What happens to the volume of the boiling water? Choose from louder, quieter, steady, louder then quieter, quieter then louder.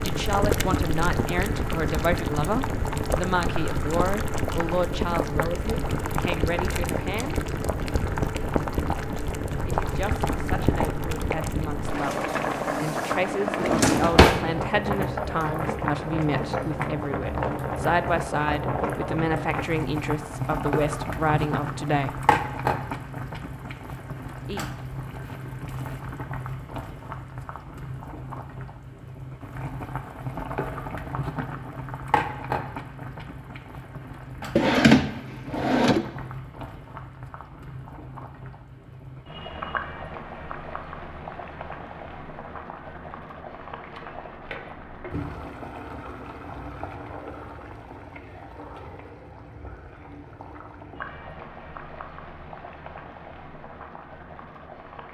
quieter.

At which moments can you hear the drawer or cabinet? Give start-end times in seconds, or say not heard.
13.6-14.4, 34.5-36.0.